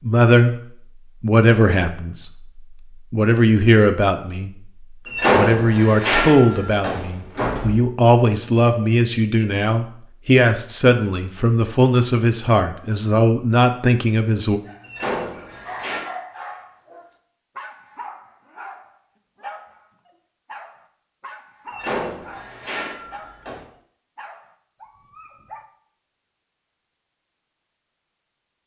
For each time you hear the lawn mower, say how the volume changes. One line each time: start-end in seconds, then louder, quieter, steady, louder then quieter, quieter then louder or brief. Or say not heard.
not heard.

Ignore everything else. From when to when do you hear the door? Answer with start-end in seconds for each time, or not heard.
5.0-7.8, 14.8-16.1, 21.6-23.6.